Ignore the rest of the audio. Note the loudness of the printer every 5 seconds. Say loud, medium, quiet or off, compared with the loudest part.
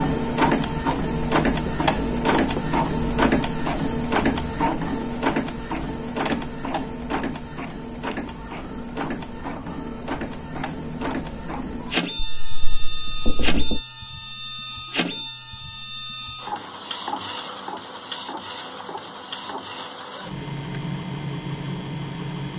loud, medium, medium, medium, medium.